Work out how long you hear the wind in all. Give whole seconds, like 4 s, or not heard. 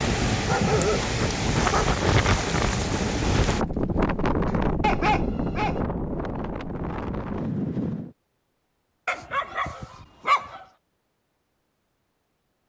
8 s.